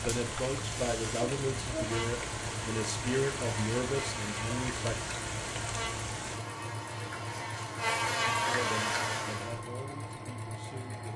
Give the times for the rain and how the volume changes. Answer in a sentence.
You can hear the rain from 0.0 to 6.5 s, at a steady volume.